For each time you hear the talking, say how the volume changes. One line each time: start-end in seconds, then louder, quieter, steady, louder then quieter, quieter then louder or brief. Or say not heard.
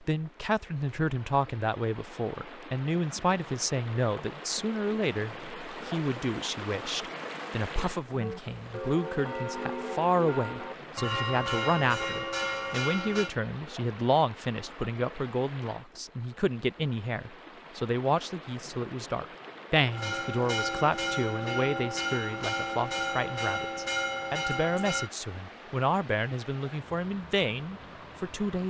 0.0-28.6 steady.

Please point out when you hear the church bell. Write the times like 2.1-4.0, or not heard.
8.1-13.3, 19.9-25.1.